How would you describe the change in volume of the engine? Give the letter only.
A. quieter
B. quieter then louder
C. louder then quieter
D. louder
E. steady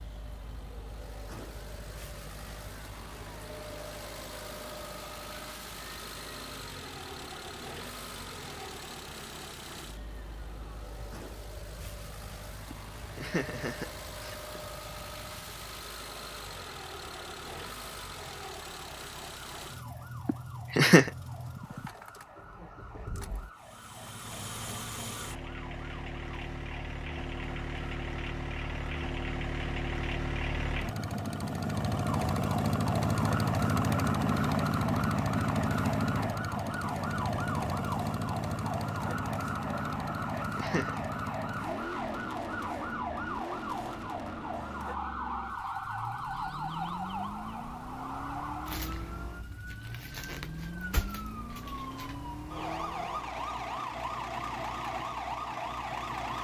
C.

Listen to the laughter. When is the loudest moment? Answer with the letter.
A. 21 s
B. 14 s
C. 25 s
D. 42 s
A.